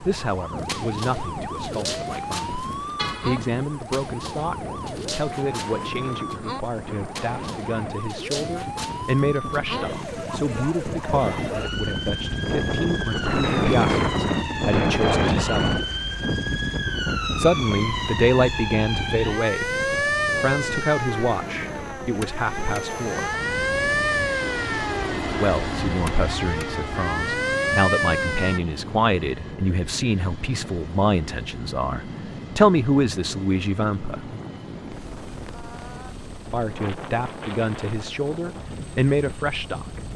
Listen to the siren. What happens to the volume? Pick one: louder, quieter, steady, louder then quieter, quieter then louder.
louder.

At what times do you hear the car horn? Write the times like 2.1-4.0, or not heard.
3.0-3.6.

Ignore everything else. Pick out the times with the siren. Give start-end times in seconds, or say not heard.
0.0-28.6.